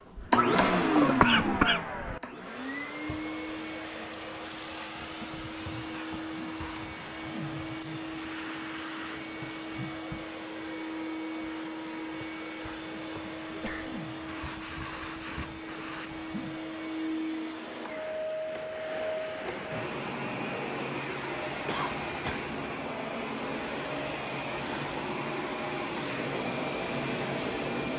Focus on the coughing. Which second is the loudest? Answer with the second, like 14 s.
1 s.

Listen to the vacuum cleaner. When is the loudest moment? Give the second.
1 s.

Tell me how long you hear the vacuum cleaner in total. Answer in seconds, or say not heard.
28 s.